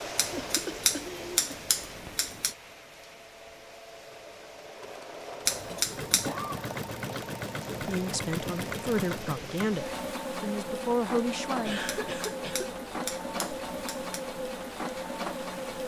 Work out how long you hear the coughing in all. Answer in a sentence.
The coughing can be heard for 3 seconds in total.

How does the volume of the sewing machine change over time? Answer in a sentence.
The loudness of the sewing machine goes up.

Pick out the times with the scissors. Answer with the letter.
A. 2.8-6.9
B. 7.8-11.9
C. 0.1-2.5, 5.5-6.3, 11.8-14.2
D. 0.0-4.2
C.